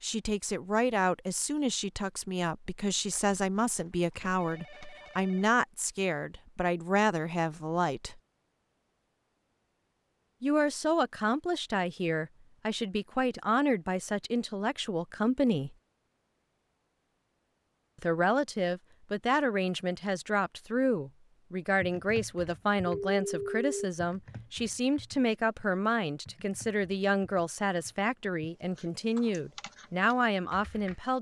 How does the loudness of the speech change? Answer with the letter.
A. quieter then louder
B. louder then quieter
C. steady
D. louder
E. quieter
C.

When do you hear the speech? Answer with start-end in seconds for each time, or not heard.
0.0-8.2, 10.4-15.8, 18.0-31.1.